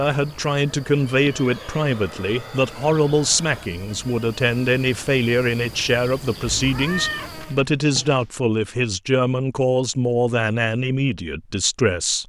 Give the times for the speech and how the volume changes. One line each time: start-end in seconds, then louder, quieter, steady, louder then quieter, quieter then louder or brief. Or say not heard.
0.0-12.2 steady.